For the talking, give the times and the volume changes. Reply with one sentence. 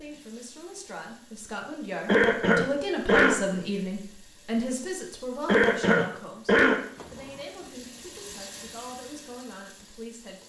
You can hear the talking from 0.0 to 10.4 s, getting louder then quieter.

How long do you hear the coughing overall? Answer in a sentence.
The coughing can be heard for 3 seconds in total.